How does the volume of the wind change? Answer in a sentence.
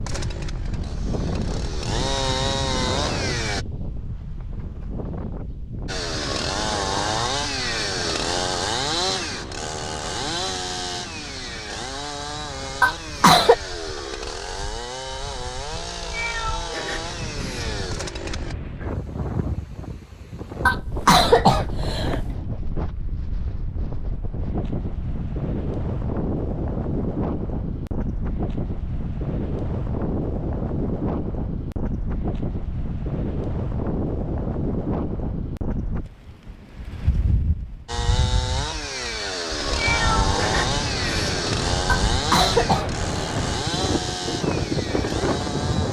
The loudness of the wind goes down, then up.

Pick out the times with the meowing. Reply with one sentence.
The meowing can be heard from 15.9 to 17.8 s and from 39.7 to 41.4 s.